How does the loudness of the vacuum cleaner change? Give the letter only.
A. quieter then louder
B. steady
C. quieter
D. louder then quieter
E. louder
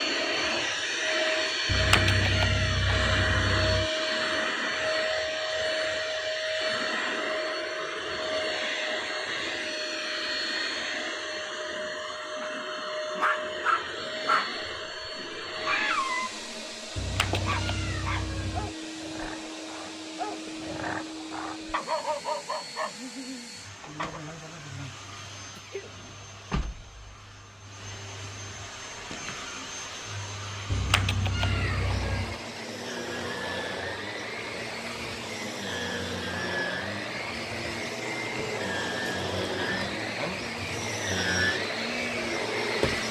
A.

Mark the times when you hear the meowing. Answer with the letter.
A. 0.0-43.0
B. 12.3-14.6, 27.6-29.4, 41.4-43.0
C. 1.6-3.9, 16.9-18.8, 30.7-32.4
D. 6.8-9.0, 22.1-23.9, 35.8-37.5
C.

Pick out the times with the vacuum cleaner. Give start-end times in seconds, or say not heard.
0.0-43.0.